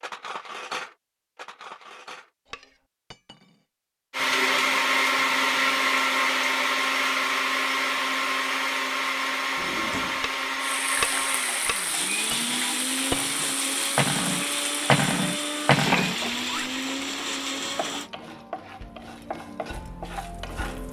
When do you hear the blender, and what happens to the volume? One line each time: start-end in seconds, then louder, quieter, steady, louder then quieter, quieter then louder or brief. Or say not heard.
4.1-18.1 quieter.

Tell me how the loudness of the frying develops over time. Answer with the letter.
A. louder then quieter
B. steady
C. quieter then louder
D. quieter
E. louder
D.